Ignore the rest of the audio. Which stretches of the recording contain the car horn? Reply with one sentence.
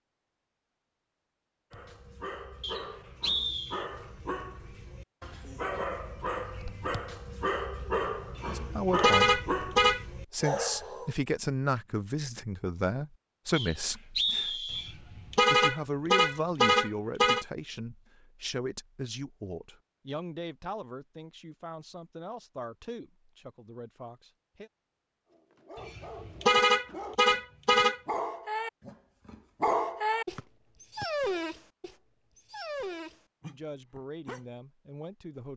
You can hear the car horn from 8.3 to 10.1 s, from 14.7 to 17.4 s and from 25.8 to 28.0 s.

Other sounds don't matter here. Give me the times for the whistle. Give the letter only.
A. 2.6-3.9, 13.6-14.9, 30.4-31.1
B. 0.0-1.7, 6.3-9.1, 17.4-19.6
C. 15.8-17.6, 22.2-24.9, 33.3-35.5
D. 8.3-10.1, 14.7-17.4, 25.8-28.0
A.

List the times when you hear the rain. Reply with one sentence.
The rain can't be heard in this clip.